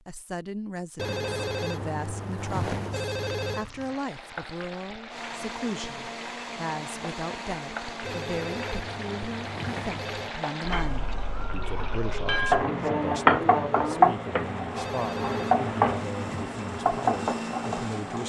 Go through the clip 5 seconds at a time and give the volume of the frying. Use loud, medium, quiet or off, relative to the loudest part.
quiet, quiet, loud, loud.